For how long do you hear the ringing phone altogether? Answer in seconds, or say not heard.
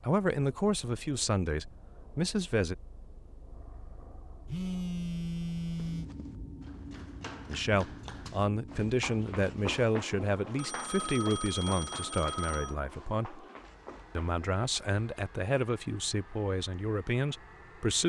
4 s.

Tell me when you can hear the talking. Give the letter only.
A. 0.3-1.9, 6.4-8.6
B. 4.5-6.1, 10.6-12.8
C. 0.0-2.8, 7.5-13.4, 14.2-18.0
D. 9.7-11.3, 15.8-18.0
C.